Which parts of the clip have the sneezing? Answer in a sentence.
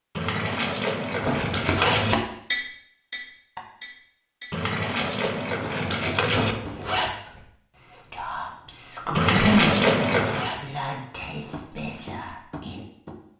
The sneezing can't be heard in this clip.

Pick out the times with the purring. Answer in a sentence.
You can't hear the purring here.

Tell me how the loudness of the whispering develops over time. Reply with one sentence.
The volume of the whispering goes up, then down.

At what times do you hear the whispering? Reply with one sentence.
The whispering can be heard from 7.2 to 12.8 s.